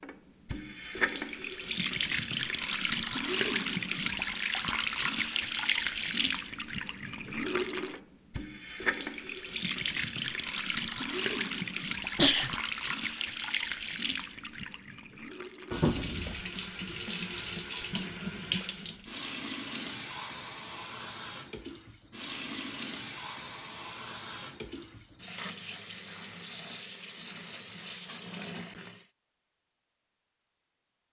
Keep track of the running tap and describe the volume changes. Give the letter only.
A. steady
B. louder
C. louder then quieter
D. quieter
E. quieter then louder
D.